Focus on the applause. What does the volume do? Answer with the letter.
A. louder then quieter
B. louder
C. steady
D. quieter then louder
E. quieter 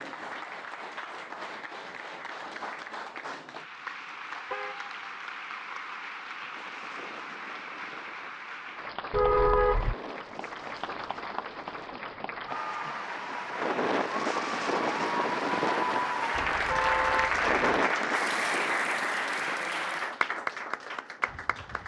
B.